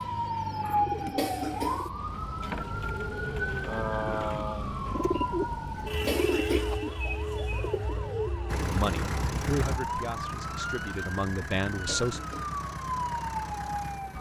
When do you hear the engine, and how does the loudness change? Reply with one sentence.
You can hear the engine from 8.4 to 14.1 s, getting quieter.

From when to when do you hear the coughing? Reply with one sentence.
The coughing can be heard from 1.1 to 1.9 s, from 6.0 to 6.8 s and from 11.8 to 12.6 s.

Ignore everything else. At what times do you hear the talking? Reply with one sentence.
You can hear the talking from 8.7 to 12.2 s.